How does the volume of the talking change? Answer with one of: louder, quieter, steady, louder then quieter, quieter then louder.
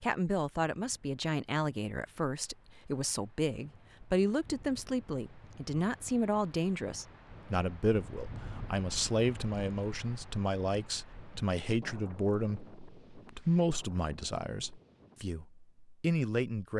steady.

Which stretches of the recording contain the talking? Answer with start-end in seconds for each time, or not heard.
0.0-16.7.